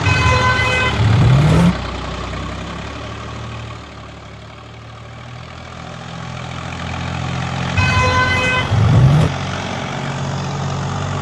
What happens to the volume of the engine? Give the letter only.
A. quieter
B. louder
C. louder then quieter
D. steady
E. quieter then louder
E.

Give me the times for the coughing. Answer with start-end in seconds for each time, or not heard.
not heard.